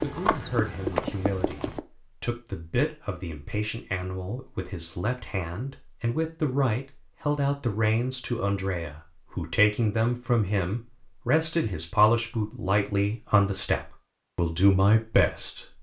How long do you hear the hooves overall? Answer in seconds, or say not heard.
2 s.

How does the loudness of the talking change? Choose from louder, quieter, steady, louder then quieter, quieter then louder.
louder.